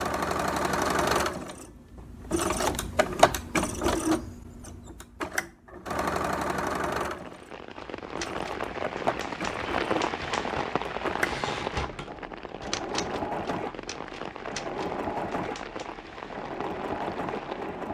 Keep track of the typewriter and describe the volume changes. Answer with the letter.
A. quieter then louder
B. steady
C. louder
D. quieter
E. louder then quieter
E.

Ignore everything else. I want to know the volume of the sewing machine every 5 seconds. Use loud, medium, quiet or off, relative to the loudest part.
loud, medium, medium, medium.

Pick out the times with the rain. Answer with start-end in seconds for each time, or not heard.
7.0-17.9.